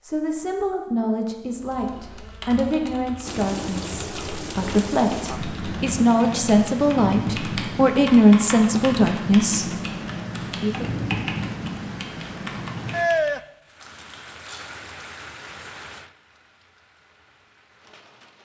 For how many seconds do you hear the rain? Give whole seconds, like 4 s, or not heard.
15 s.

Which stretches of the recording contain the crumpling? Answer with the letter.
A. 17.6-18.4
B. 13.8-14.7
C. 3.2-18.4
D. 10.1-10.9
B.